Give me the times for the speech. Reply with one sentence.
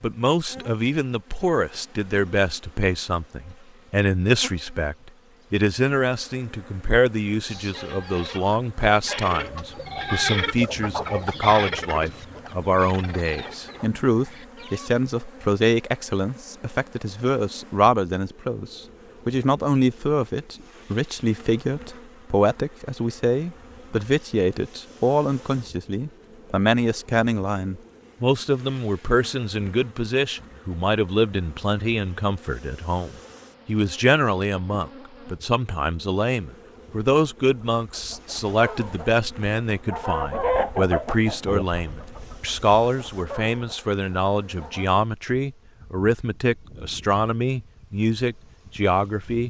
The speech can be heard from 0.0 to 49.4 s.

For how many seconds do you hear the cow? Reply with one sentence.
You can't hear the cow here.